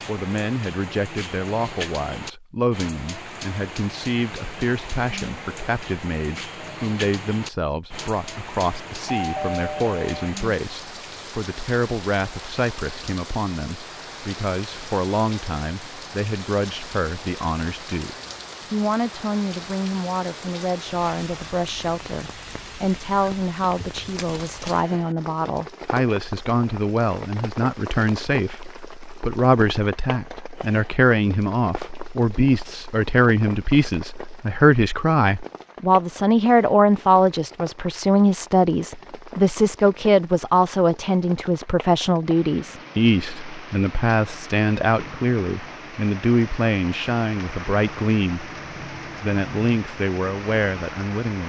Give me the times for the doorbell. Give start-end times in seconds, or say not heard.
9.1-10.3.